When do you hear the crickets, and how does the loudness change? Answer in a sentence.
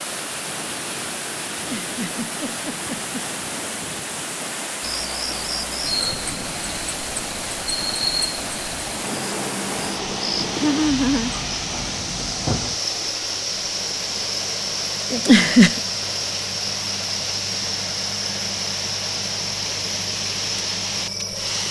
The crickets can be heard from 4.8 to 21.6 s, at a steady volume.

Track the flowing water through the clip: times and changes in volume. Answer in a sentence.
You can hear the flowing water from 0.0 to 21.6 s, at a steady volume.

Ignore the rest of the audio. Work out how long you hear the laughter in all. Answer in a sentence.
The laughter can be heard for 3 seconds in total.